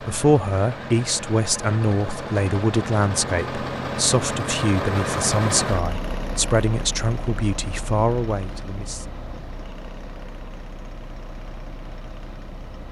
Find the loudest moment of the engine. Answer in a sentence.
The volume of the engine peaks at 5 seconds.